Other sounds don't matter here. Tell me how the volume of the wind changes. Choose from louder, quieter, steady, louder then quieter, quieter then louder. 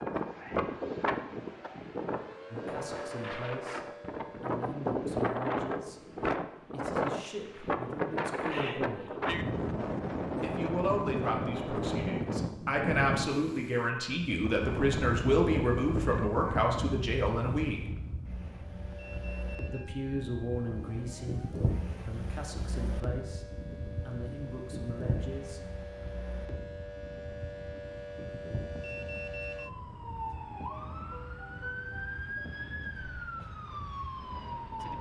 quieter.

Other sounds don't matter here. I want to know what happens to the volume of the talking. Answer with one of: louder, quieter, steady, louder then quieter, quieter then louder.
louder then quieter.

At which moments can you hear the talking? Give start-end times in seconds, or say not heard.
2.5-9.2, 10.4-17.8, 19.7-25.9.